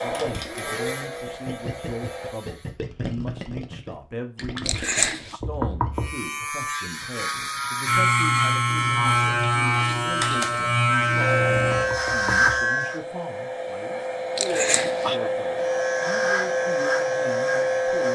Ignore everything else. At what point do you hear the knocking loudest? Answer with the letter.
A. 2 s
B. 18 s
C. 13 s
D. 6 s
D.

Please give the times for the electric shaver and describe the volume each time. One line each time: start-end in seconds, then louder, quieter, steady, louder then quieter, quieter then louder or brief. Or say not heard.
0.1-2.8 brief
5.9-13.0 louder
15.6-18.0 brief.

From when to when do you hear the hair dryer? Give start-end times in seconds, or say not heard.
0.0-2.4, 11.2-18.0.